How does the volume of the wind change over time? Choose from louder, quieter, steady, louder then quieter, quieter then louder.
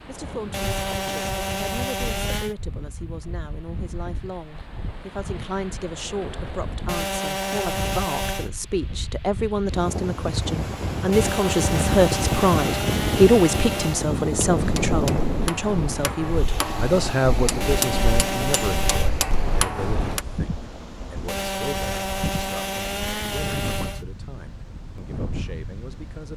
louder then quieter.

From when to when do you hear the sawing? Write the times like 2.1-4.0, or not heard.
0.5-2.5, 6.8-8.5, 11.1-14.1, 17.6-19.1, 21.2-24.1.